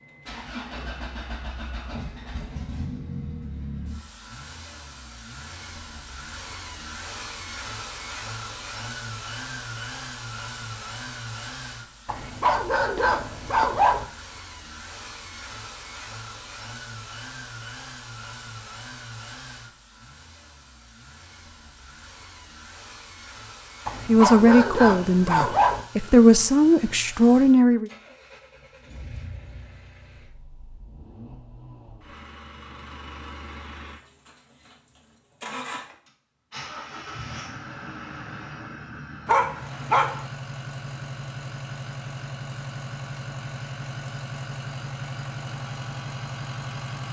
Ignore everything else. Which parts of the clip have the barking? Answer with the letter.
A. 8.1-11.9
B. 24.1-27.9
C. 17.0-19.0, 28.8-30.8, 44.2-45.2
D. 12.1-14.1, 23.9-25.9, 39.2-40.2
D.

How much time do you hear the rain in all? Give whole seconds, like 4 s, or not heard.
not heard.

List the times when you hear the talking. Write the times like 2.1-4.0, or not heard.
24.1-27.9.